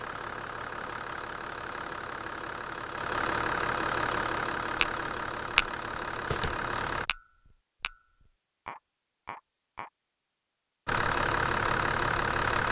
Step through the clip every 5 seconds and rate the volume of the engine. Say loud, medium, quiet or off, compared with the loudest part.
medium, medium, loud.